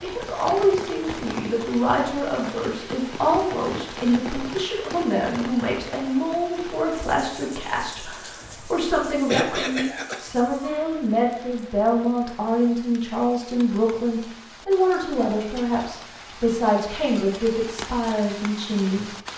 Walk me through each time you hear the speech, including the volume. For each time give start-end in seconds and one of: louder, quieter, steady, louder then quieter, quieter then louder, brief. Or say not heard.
0.0-19.3 steady.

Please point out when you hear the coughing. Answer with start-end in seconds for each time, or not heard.
9.2-10.8.